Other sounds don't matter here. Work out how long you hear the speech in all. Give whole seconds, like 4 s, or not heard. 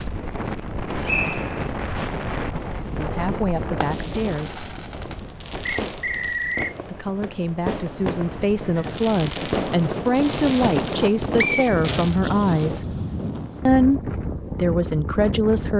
10 s.